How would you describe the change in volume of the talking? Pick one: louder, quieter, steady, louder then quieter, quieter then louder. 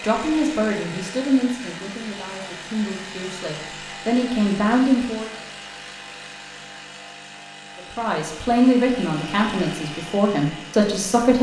quieter then louder.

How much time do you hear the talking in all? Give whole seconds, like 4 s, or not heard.
9 s.